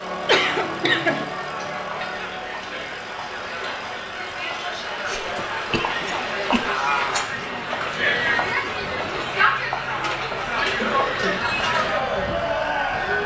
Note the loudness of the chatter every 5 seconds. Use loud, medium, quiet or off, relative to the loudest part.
medium, loud, loud.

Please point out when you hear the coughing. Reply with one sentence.
You can hear the coughing from 0.2 to 1.2 s, from 5.0 to 6.7 s and from 10.8 to 11.4 s.